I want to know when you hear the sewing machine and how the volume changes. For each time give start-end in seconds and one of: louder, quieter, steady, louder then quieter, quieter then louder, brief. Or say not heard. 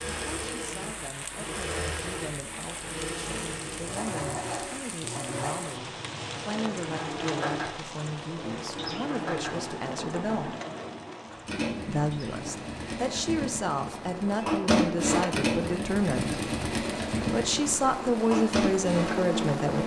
0.0-19.8 louder.